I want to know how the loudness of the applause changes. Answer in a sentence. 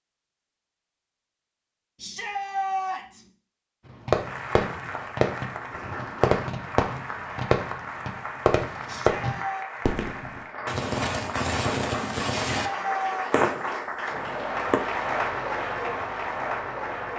The volume of the applause goes up.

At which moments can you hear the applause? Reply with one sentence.
You can hear the applause from 4.1 to 17.1 s.